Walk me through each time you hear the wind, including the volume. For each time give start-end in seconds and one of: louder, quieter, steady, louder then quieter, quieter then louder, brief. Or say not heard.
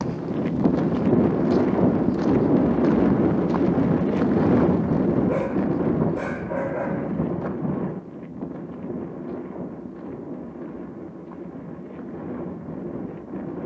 0.0-13.6 quieter.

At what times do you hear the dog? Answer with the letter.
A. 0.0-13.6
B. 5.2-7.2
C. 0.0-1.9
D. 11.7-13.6
B.